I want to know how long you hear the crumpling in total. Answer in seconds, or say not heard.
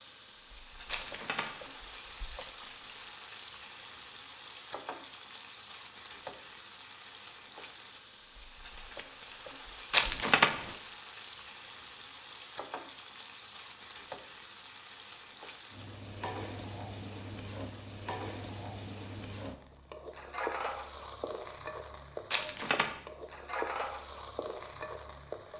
2 s.